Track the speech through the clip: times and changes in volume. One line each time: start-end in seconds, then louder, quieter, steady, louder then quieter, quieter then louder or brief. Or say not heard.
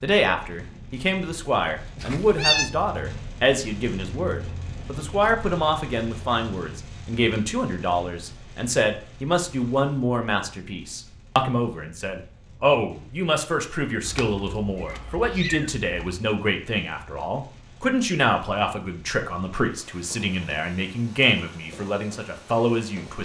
0.0-23.2 steady.